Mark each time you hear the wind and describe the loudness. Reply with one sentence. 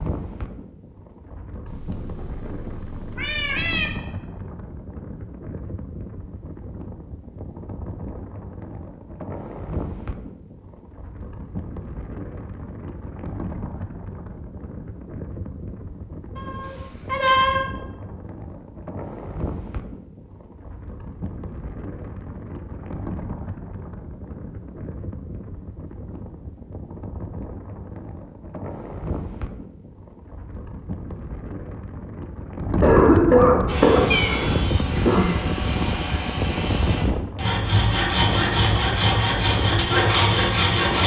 The wind can be heard from 0.0 to 41.0 s, getting louder.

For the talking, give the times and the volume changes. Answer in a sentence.
You can't hear the talking here.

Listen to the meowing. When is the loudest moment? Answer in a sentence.
The volume of the meowing peaks at 17 seconds.